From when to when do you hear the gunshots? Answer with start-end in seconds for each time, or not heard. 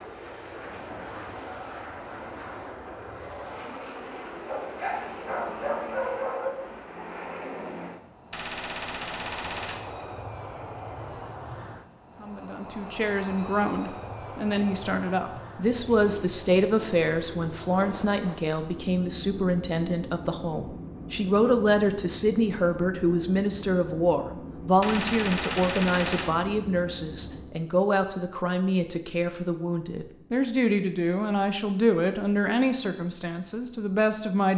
8.3-9.8, 24.8-26.3.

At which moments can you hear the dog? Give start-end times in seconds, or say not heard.
4.5-6.5.